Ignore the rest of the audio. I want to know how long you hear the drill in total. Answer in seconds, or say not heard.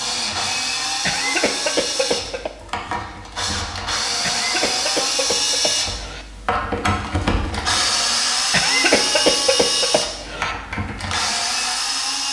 12 s.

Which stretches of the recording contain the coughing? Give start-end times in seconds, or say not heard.
1.0-2.5, 4.2-6.2, 8.5-10.6.